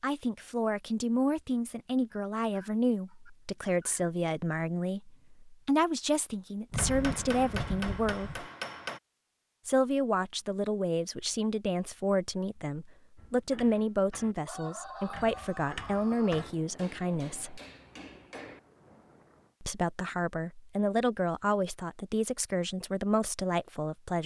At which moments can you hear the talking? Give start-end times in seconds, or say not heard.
0.0-8.4, 9.7-17.6, 19.6-24.2.